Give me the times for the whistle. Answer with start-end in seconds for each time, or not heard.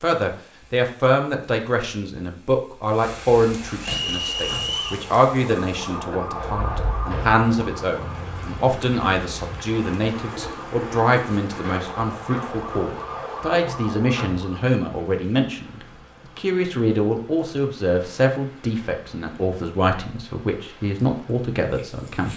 3.8-5.0.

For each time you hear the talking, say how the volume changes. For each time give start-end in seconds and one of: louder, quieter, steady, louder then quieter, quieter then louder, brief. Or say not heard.
0.0-22.3 steady.